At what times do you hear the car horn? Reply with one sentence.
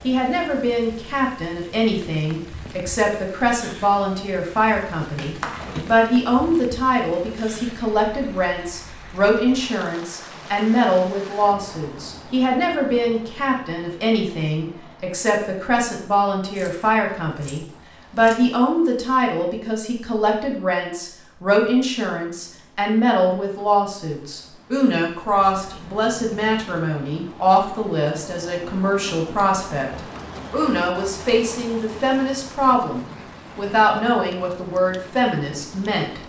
The car horn can't be heard in this clip.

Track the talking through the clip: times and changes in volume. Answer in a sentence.
The talking can be heard from 0.0 to 36.2 s, at a steady volume.